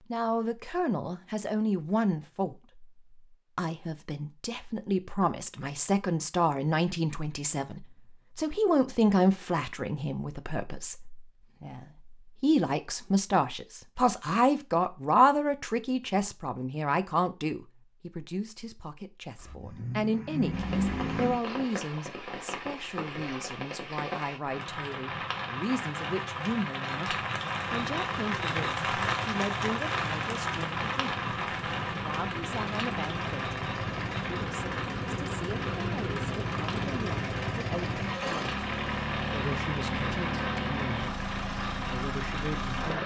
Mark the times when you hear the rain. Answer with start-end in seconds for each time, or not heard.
20.5-43.0.